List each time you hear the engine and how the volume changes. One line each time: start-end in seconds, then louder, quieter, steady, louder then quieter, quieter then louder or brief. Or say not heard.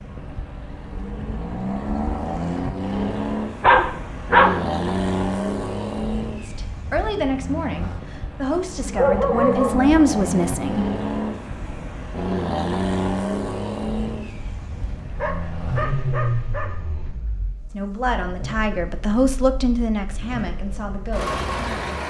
0.0-22.0 quieter.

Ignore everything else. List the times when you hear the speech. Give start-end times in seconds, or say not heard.
6.4-10.8, 17.7-22.0.